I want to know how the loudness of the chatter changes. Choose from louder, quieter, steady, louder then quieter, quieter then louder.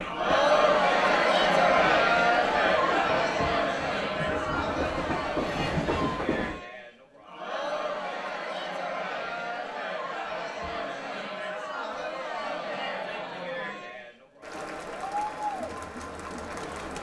quieter.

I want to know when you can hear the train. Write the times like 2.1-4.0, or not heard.
0.0-6.6.